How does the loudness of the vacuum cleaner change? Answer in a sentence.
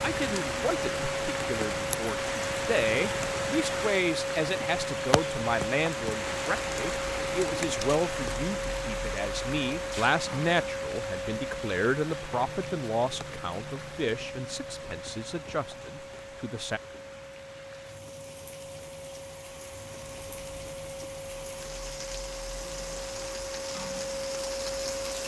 The volume of the vacuum cleaner goes down, then up.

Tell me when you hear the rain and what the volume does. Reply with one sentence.
You can hear the rain from 0.0 to 25.2 s, getting quieter then louder.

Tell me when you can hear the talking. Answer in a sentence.
The talking can be heard from 0.0 to 16.8 s.